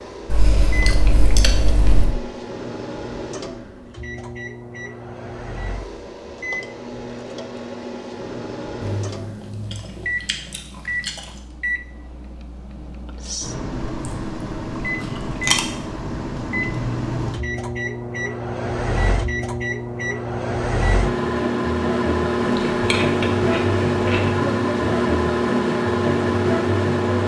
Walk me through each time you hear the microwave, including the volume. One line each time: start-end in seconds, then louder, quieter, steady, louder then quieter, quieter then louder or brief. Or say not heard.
0.0-27.2 louder.